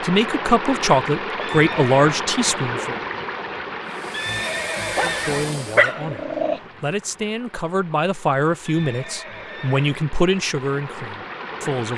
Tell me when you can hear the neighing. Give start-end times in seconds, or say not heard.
1.4-2.0, 4.1-5.5, 8.7-10.1.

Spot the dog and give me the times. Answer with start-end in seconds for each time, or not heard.
5.0-6.6.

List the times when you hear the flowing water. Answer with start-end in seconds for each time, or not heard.
0.0-11.9.